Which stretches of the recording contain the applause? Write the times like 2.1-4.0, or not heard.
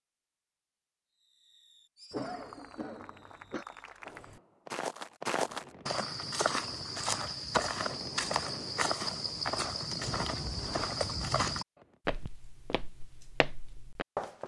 2.2-4.2.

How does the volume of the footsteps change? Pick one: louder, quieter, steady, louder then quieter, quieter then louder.
quieter.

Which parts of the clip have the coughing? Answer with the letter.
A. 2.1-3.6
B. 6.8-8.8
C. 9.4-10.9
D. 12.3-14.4
A.